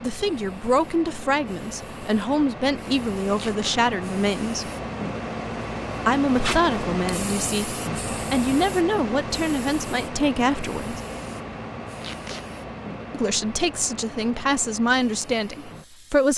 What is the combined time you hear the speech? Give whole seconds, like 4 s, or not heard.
13 s.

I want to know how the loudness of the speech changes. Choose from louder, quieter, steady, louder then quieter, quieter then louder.
steady.